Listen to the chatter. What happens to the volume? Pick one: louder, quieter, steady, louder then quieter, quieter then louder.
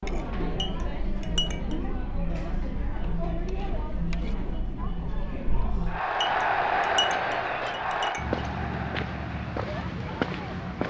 louder then quieter.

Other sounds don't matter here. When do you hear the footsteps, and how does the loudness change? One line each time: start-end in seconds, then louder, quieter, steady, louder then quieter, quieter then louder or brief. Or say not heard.
6.2-10.8 louder.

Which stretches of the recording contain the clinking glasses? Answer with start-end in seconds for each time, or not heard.
0.6-1.8, 6.2-8.4.